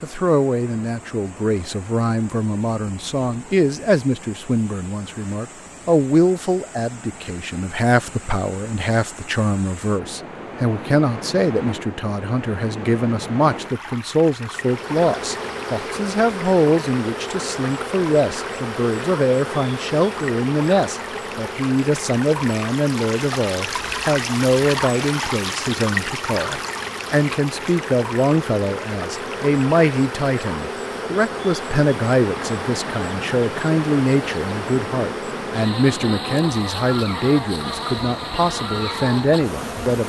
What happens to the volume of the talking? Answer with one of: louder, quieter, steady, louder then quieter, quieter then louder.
steady.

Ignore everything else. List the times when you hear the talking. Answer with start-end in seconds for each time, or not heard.
0.0-40.0.